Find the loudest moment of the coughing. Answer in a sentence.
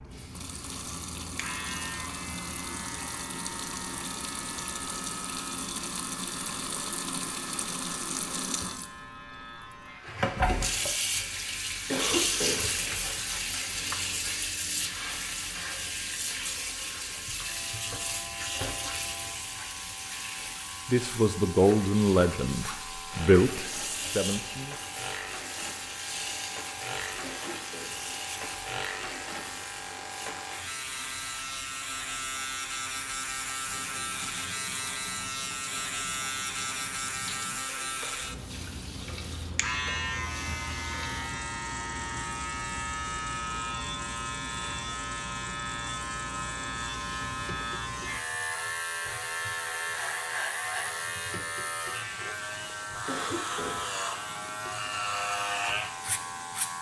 The volume of the coughing peaks at 12 seconds.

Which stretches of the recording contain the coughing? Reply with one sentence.
You can hear the coughing from 11.9 to 12.7 s, from 27.2 to 28.0 s and from 53.0 to 53.9 s.